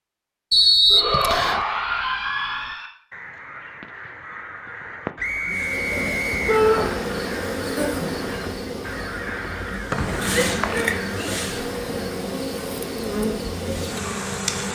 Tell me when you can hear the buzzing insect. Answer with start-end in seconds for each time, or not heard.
5.5-14.6.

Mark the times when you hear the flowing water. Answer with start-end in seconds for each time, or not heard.
not heard.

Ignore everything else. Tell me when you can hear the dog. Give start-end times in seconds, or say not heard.
not heard.